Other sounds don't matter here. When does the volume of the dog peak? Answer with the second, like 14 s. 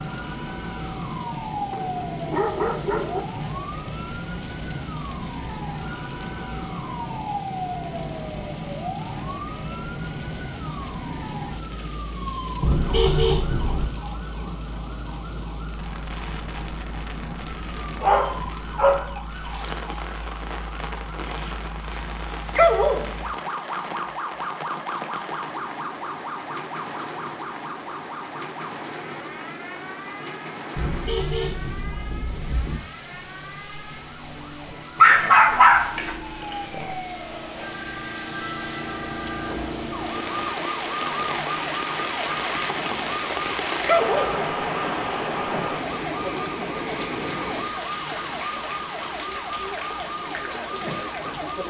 35 s.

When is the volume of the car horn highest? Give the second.
13 s.